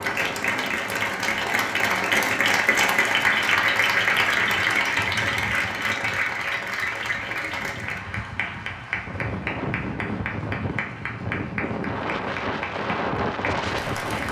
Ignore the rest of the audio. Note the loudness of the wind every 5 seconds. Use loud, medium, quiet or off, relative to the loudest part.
medium, medium, loud.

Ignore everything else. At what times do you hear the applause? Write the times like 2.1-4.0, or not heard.
0.0-14.2.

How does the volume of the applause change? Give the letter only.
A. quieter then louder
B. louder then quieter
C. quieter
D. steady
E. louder
C.